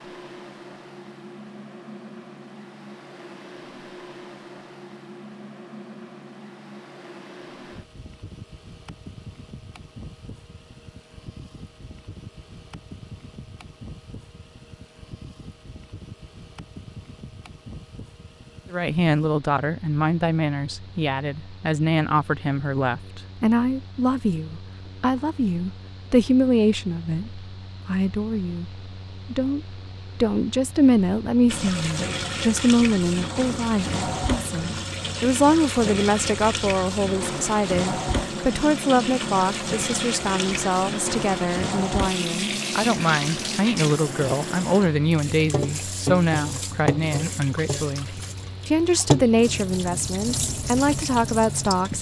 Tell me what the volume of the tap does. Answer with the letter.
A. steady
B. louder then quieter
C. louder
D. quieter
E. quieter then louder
A.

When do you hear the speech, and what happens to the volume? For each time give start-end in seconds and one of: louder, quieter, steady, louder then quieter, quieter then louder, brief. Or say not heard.
18.7-51.9 steady.